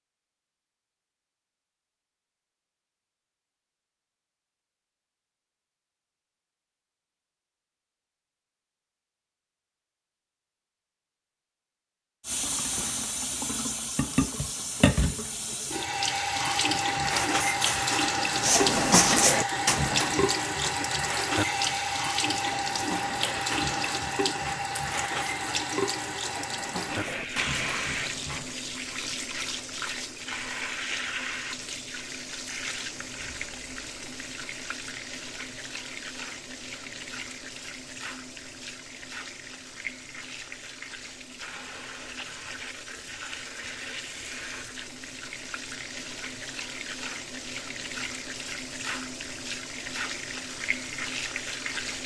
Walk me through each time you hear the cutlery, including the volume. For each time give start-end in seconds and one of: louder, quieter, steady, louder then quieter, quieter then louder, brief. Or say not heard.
16.8-28.6 quieter.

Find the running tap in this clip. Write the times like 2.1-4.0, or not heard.
12.2-52.0.